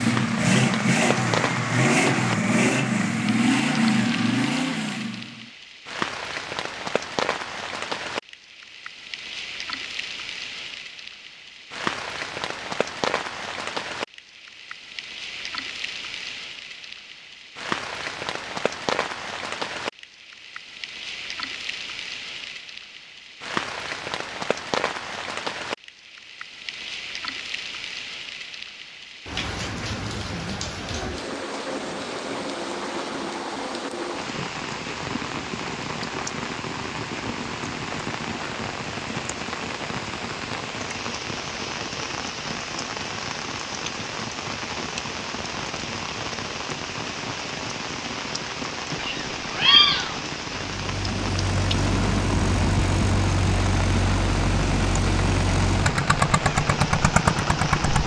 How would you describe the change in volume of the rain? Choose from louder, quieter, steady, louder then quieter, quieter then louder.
steady.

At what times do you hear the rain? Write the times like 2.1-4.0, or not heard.
0.0-58.0.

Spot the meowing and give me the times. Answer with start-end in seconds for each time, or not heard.
49.0-50.2.